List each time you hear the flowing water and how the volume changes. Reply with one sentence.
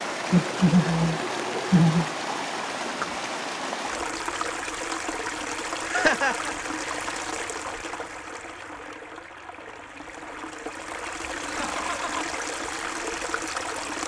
The flowing water can be heard from 0.0 to 14.0 s, getting quieter then louder.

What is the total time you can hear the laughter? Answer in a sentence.
The laughter can be heard for 3 seconds in total.